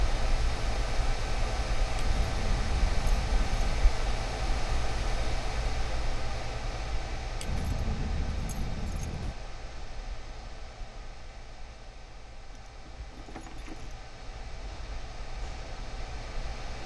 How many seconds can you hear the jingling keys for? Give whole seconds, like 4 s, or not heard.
5 s.